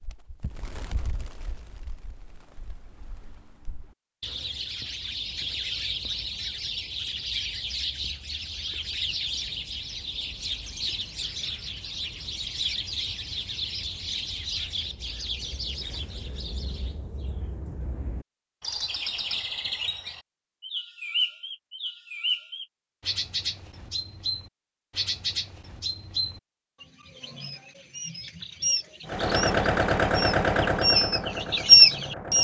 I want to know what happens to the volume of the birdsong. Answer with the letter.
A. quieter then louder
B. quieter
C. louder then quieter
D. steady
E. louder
E.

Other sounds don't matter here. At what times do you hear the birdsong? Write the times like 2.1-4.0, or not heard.
0.0-32.3.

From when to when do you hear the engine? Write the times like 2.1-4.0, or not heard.
29.1-32.3.